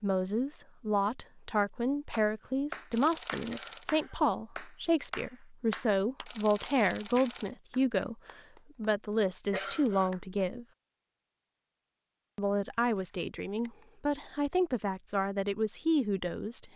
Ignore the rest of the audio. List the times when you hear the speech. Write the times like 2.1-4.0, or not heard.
0.0-10.7, 12.3-16.7.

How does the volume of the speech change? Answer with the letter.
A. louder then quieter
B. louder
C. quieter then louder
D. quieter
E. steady
E.